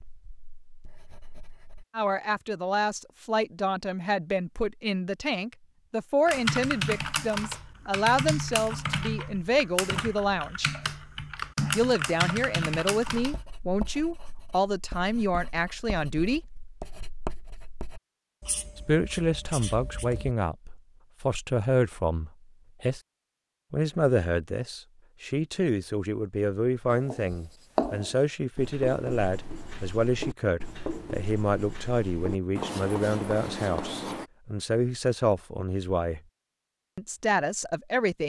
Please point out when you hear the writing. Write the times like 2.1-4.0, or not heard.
0.0-1.9, 13.2-20.4, 26.9-34.3.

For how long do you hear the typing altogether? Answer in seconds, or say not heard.
7 s.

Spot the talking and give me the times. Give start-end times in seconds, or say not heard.
1.9-10.7, 11.7-16.4, 18.8-23.0, 23.7-36.2, 37.0-38.2.